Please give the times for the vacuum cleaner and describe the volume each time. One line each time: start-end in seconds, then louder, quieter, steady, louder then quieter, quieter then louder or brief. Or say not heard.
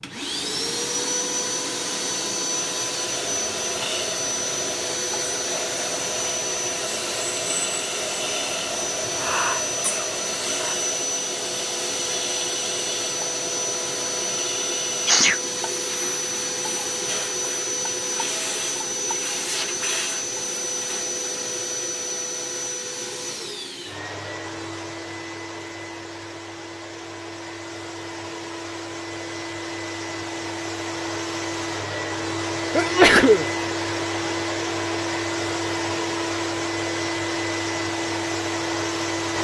0.0-39.3 quieter then louder.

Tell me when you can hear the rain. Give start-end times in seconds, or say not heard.
not heard.